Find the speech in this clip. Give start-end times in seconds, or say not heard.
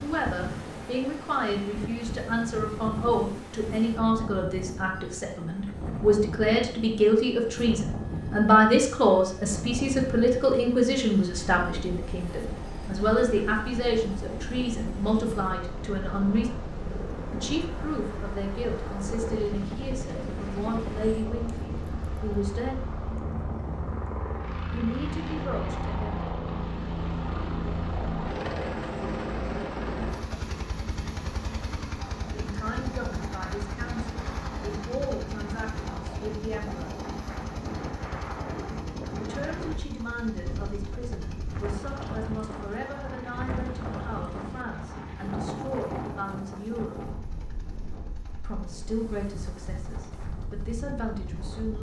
0.0-16.5, 17.3-22.8, 24.7-26.3, 32.3-37.0, 39.2-47.0, 48.4-51.7.